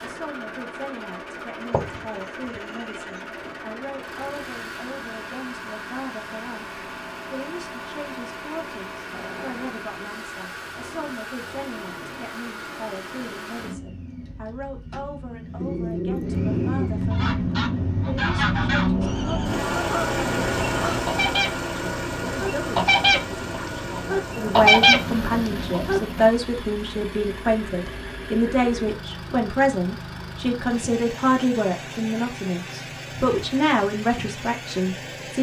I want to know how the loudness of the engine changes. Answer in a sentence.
The loudness of the engine goes up, then down.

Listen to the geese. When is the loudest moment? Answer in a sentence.
The loudest moment of the geese is at 25 seconds.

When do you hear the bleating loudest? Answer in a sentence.
The loudest moment of the bleating is at 2 seconds.